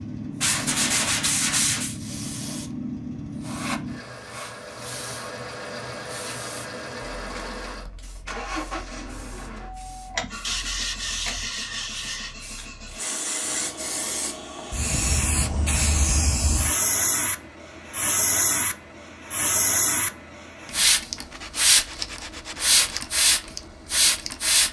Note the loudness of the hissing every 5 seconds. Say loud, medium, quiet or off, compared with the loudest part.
quiet, quiet, quiet, loud, loud.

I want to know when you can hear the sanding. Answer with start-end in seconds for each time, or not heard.
0.4-2.0, 10.4-12.3, 21.3-23.0.